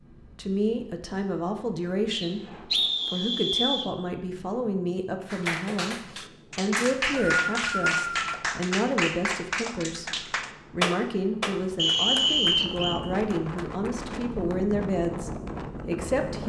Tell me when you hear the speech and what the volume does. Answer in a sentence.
You can hear the speech from 0.1 to 16.4 s, at a steady volume.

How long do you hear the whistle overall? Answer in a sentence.
The whistle can be heard for 5 seconds in total.